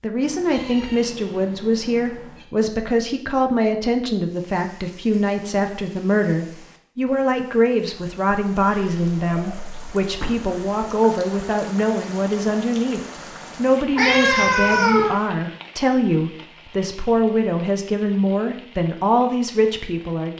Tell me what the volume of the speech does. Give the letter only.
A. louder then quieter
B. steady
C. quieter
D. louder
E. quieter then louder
B.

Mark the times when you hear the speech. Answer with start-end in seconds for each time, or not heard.
0.0-20.3.